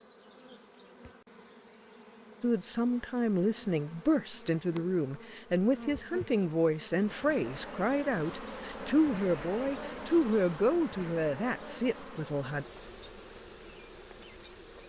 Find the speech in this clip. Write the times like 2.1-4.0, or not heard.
2.4-12.7.